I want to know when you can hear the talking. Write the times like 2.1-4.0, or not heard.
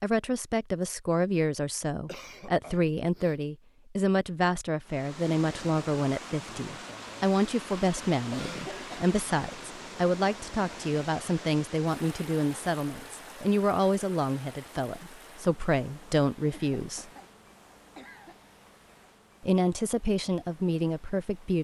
0.0-17.1, 19.4-21.5.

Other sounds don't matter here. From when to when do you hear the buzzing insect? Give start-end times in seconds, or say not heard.
not heard.